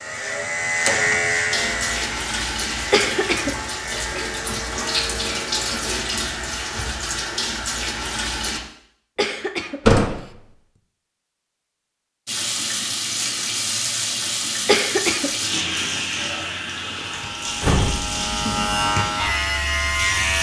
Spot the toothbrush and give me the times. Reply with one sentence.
You can't hear the toothbrush here.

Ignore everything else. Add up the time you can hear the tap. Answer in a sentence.
You can hear the tap for 15 seconds altogether.